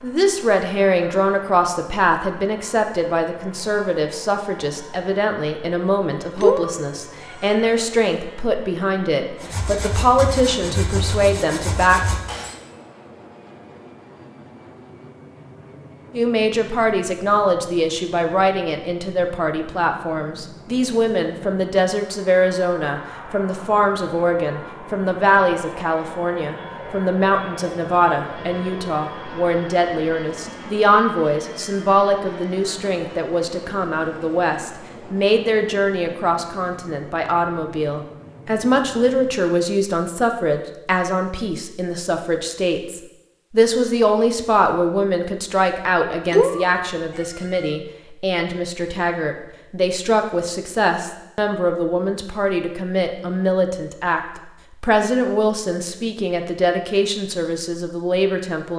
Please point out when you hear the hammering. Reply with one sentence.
You can't hear the hammering here.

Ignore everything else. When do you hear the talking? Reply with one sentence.
You can hear the talking from 0.0 to 12.0 s and from 16.1 to 58.7 s.